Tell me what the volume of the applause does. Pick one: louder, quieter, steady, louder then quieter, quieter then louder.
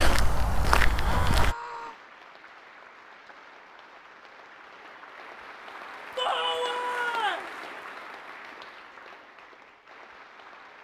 louder then quieter.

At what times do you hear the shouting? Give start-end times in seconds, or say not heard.
0.9-1.9, 6.2-7.5.